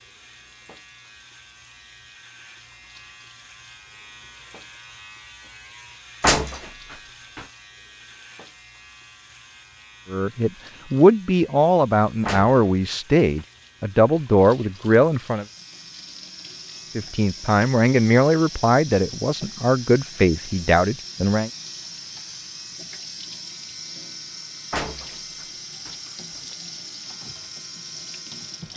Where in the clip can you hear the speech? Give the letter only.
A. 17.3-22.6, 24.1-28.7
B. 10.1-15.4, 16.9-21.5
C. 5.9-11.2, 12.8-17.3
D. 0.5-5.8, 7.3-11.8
B.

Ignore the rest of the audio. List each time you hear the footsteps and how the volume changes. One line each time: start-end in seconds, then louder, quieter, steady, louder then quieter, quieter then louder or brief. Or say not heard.
not heard.